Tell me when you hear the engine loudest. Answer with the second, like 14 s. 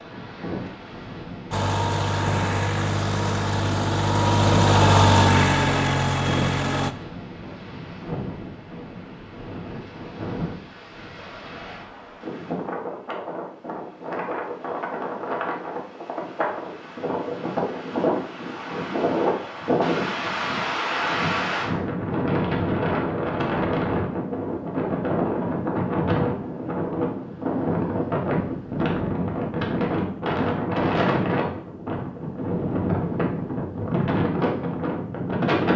5 s.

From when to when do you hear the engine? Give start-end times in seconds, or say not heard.
1.5-7.0.